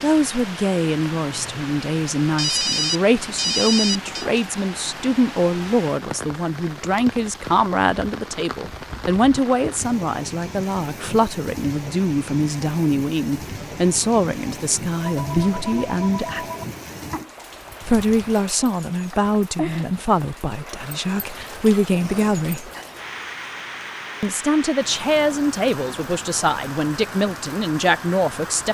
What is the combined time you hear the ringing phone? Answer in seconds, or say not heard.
4 s.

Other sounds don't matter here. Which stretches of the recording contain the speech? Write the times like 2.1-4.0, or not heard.
0.0-16.4, 17.9-22.7, 24.2-28.6.